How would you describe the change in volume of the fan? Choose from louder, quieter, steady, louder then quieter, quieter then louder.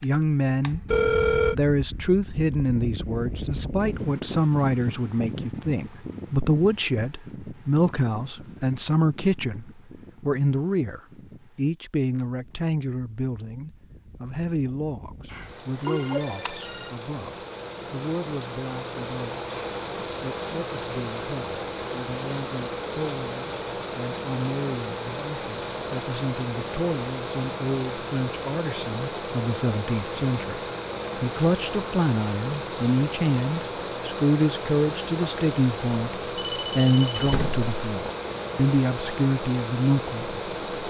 quieter then louder.